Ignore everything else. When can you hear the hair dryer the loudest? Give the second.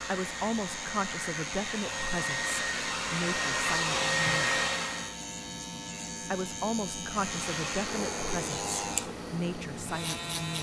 4 s.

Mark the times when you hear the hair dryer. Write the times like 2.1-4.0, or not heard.
0.0-5.2, 7.1-10.4.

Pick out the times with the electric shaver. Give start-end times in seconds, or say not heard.
0.0-10.5.